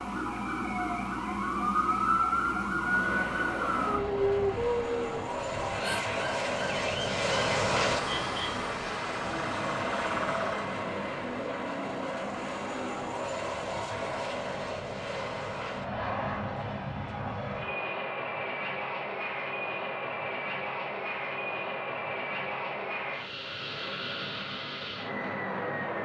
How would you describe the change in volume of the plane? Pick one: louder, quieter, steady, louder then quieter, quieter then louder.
steady.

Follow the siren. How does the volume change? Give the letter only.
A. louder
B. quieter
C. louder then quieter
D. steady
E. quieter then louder
B.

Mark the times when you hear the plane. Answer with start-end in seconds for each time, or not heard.
2.8-26.0.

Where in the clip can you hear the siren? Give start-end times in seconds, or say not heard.
0.0-10.8.